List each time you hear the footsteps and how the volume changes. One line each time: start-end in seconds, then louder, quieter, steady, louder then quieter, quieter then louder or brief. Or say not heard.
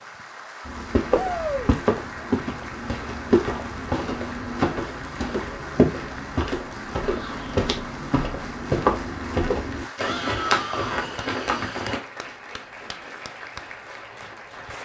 0.7-12.0 steady.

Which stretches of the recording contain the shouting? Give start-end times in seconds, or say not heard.
1.1-1.7, 7.0-7.5, 9.9-11.1.